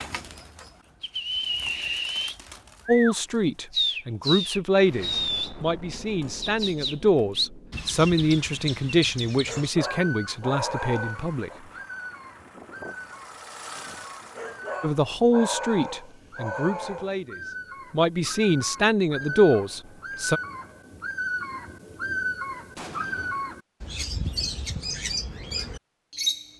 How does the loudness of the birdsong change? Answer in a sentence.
The loudness of the birdsong goes down, then up.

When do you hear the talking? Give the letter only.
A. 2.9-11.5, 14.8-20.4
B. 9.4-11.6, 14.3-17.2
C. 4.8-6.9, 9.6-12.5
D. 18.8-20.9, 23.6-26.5
A.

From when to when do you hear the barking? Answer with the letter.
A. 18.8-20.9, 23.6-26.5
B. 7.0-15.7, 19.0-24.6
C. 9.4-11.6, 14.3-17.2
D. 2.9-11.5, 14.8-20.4
C.